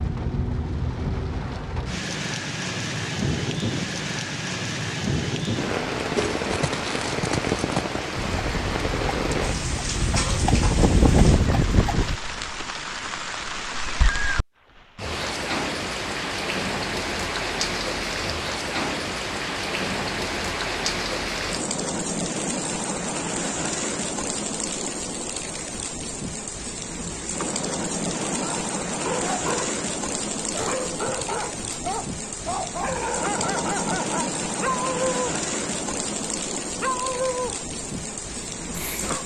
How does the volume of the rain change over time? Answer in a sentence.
The volume of the rain stays about the same.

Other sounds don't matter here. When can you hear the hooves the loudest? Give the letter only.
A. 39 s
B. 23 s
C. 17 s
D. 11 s
D.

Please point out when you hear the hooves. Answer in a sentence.
You can hear the hooves from 6.2 to 12.2 s.